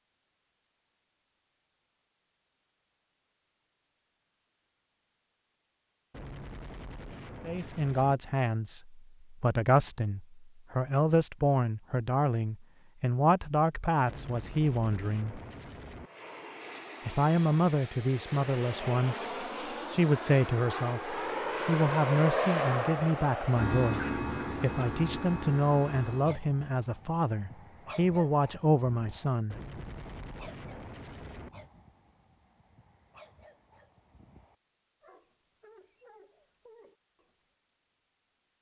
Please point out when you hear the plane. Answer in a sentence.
You can hear the plane from 16.0 to 26.4 s.